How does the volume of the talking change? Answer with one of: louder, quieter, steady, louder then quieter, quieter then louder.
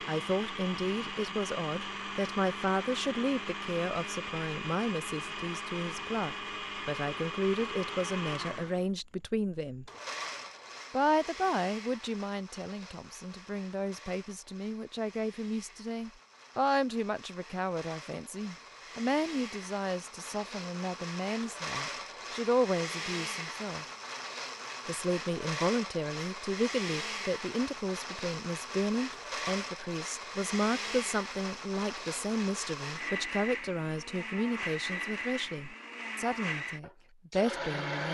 steady.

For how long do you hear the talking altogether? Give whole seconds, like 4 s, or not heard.
36 s.